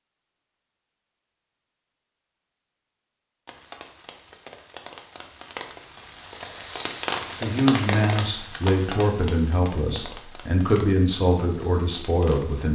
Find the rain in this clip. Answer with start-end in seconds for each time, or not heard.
3.5-12.6.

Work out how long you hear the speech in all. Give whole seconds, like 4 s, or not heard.
5 s.